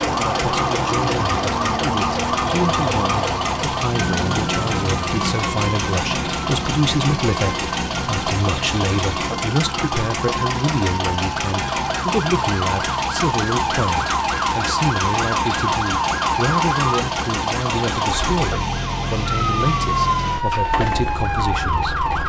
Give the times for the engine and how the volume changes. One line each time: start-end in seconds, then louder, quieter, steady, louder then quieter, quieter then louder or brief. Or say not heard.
0.0-22.2 steady.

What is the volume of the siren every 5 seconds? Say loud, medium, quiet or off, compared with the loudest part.
loud, medium, loud, loud, loud.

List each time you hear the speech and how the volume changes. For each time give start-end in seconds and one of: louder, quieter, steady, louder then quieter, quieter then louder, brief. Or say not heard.
0.1-21.9 steady.